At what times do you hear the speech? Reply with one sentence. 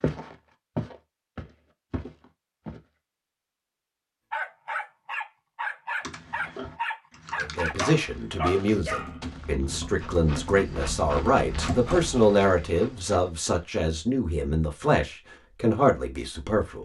The speech can be heard from 7.4 to 16.8 s.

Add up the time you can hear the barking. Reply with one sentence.
You can hear the barking for 8 seconds altogether.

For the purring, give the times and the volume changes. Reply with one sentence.
You can't hear the purring here.